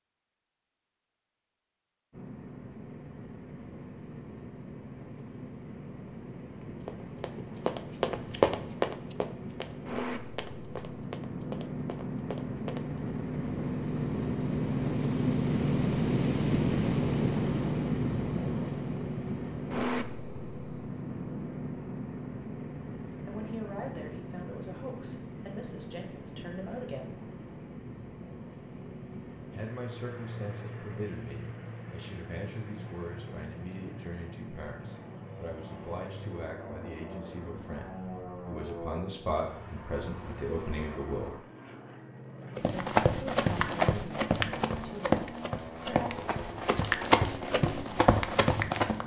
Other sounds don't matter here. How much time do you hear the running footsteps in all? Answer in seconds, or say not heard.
13 s.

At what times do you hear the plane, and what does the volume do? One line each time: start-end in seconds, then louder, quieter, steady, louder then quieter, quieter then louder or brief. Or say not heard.
2.1-49.0 louder then quieter.